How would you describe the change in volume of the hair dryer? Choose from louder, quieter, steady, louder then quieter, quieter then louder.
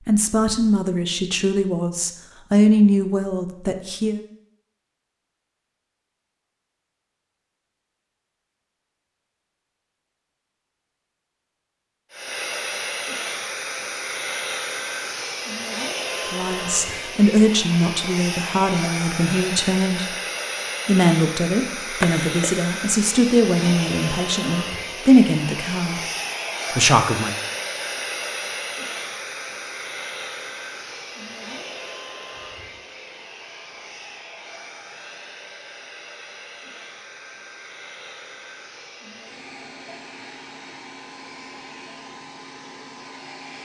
quieter.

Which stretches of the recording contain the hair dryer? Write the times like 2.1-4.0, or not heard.
12.1-43.6.